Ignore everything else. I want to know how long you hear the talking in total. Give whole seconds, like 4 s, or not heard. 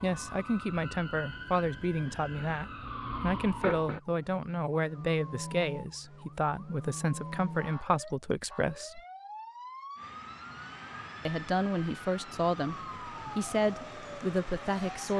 13 s.